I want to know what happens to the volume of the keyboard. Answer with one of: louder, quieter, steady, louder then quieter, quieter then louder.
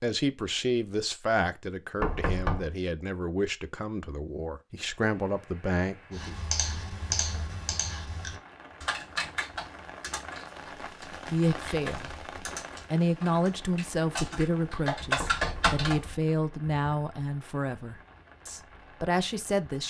quieter then louder.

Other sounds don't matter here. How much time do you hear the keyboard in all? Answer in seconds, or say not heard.
10 s.